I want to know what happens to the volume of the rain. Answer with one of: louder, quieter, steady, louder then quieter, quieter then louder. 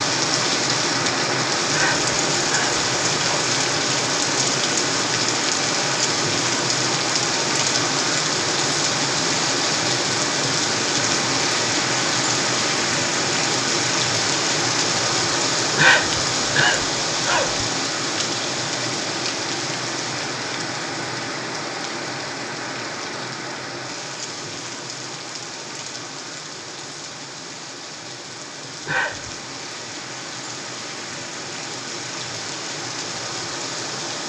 quieter.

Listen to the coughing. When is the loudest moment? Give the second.
16 s.